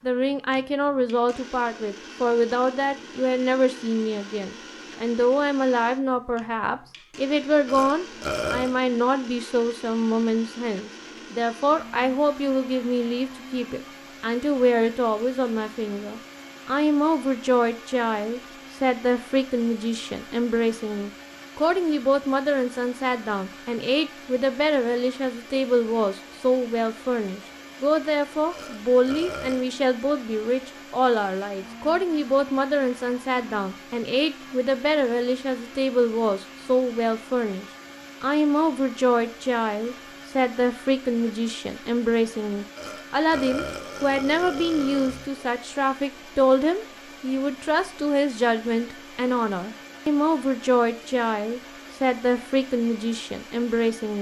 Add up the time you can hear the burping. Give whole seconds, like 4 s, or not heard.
5 s.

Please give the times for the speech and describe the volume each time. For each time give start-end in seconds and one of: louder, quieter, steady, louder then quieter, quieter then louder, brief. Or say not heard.
0.0-54.1 steady.